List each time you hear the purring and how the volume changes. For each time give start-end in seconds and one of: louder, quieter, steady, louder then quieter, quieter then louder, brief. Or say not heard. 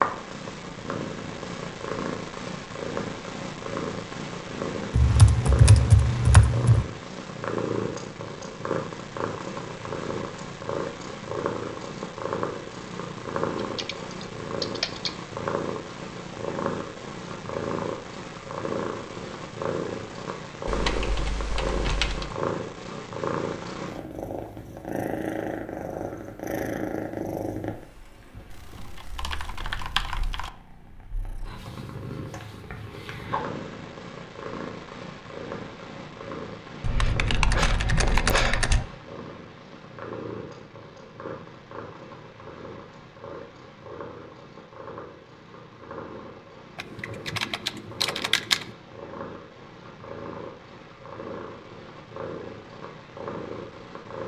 0.0-54.2 quieter.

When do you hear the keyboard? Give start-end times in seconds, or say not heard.
4.9-6.8, 13.8-15.1, 20.6-22.4, 28.5-30.5, 36.8-38.9, 46.8-48.6.